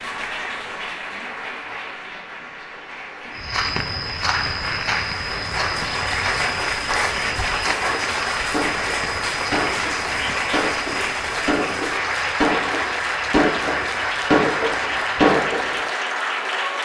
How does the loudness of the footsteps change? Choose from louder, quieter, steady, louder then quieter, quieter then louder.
quieter.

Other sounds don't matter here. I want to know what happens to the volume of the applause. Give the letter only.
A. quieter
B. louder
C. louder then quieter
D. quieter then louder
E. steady
B.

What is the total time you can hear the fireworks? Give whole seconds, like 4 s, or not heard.
8 s.